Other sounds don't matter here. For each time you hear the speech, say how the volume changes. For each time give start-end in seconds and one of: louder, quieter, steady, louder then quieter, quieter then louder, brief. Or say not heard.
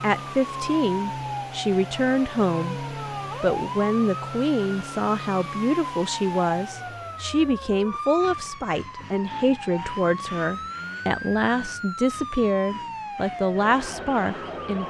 0.0-14.8 steady.